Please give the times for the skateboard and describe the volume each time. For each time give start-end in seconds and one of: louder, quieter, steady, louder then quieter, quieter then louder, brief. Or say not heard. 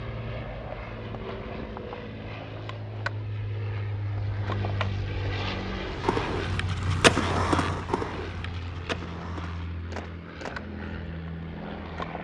0.0-12.1 louder then quieter.